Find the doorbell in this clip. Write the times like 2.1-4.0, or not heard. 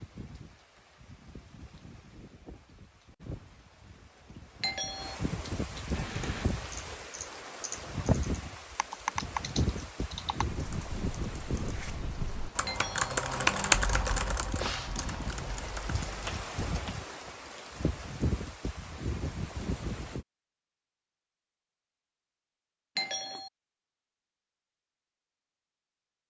4.6-5.2, 12.7-13.1, 22.9-23.5.